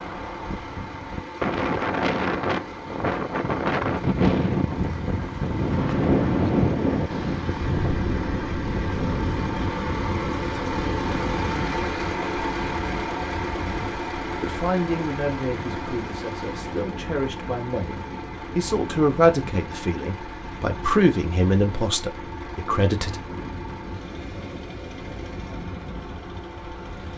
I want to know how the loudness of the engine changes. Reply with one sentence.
The loudness of the engine goes up, then down.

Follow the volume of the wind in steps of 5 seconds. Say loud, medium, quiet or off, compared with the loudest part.
loud, loud, medium, quiet, quiet, quiet.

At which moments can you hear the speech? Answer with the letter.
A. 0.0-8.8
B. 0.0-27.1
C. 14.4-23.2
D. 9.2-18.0
C.